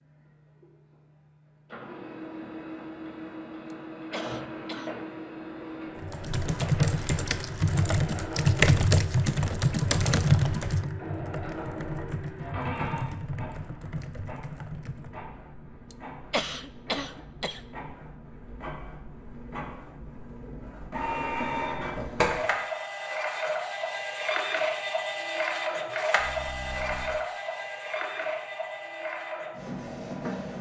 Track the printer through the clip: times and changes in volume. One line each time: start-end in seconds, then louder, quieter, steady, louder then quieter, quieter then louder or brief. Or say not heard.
0.0-30.5 louder.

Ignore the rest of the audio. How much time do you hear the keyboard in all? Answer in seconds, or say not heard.
9 s.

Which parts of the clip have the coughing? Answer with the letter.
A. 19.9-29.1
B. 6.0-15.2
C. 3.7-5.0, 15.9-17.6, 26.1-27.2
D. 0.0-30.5
C.